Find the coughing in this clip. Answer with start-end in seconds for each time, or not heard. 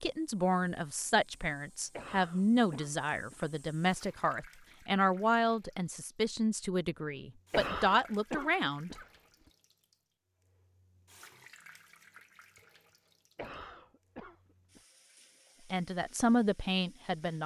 1.9-3.5, 7.5-9.1, 13.3-14.8.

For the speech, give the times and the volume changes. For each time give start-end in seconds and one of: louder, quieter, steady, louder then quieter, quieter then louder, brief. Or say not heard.
0.0-8.9 steady
15.7-17.4 brief.